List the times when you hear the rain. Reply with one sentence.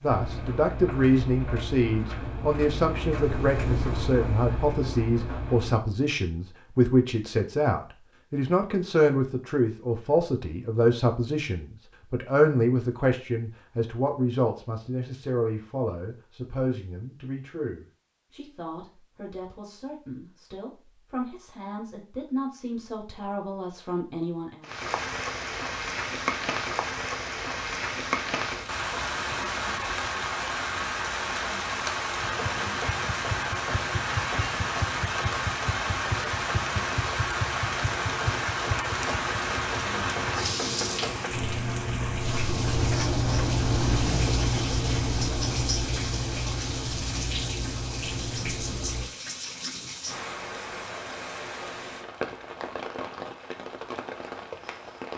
You can hear the rain from 24.6 to 55.1 s.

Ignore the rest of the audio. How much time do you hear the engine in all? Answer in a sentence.
The engine can be heard for 23 seconds in total.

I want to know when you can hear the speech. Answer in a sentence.
The speech can be heard from 0.0 to 24.6 s.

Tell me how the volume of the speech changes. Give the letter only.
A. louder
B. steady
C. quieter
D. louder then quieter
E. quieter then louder
C.